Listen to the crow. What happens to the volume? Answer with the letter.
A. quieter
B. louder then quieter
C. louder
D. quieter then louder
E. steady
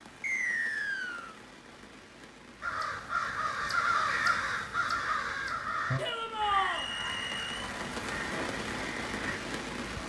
A.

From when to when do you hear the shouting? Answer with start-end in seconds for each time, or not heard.
6.0-6.9.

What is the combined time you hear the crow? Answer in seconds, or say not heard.
7 s.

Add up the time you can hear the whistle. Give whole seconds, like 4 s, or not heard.
2 s.